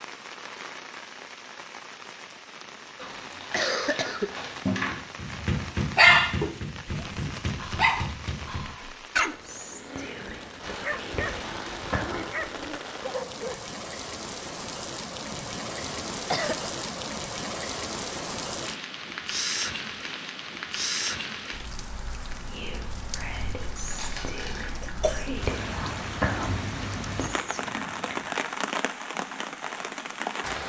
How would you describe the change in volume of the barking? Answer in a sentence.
The volume of the barking goes down.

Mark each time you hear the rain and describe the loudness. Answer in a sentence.
The rain can be heard from 0.0 to 30.6 s, getting louder.